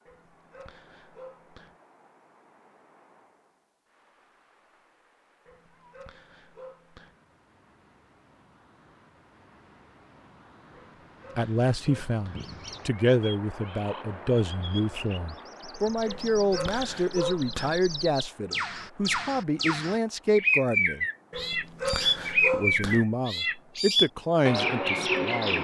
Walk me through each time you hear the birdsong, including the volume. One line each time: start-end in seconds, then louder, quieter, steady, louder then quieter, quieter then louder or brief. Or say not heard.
12.3-25.5 louder.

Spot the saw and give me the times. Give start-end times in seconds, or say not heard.
not heard.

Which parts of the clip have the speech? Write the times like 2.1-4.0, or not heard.
11.3-21.1, 22.5-25.5.